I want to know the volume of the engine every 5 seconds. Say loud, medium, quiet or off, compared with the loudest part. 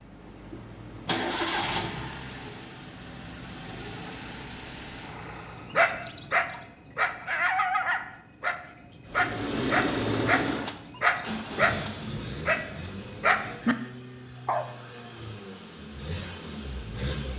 loud, loud, loud, medium.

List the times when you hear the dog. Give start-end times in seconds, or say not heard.
5.6-14.7.